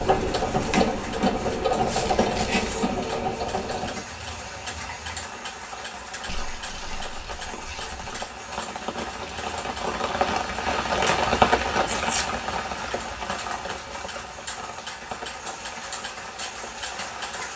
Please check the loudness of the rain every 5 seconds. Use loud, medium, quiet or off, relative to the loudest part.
quiet, medium, loud, quiet.